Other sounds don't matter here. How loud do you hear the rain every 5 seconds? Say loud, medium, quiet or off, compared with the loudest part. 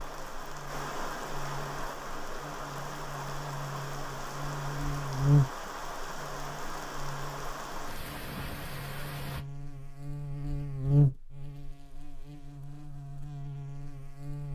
loud, loud, off.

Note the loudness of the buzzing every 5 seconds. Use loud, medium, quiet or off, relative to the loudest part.
medium, loud, loud.